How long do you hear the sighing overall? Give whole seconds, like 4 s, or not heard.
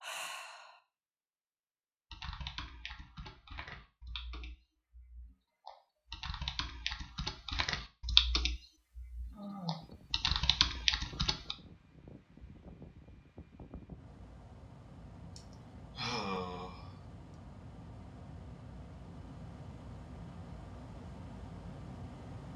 3 s.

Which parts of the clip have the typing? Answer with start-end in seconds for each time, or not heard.
2.1-11.6.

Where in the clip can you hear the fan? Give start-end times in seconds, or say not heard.
9.8-22.5.